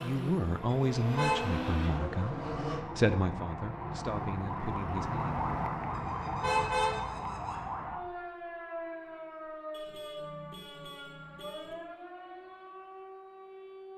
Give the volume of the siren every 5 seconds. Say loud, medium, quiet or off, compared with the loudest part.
loud, loud, medium.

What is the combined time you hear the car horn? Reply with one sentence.
The car horn can be heard for 4 seconds in total.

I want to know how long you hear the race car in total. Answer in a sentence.
You can hear the race car for 3 seconds altogether.